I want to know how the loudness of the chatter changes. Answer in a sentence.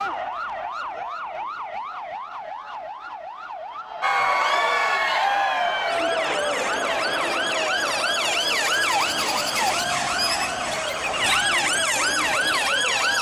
The volume of the chatter goes down.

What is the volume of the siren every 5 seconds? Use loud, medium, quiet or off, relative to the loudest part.
medium, loud, loud.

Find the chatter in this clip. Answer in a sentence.
You can hear the chatter from 4.0 to 13.1 s.